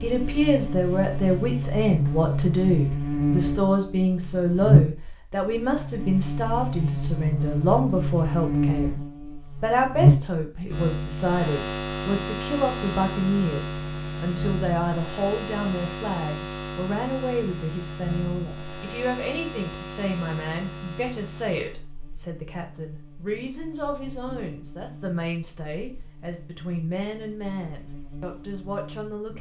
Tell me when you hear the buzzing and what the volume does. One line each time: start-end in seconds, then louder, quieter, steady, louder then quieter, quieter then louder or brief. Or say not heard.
0.0-29.3 quieter.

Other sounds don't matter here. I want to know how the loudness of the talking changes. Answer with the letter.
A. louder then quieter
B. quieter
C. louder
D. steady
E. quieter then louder
B.